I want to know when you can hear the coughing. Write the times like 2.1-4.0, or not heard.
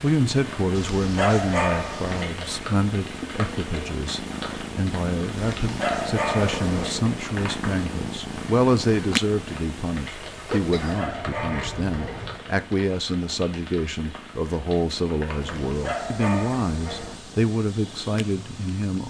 10.4-12.4.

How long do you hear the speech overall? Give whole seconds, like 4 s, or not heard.
19 s.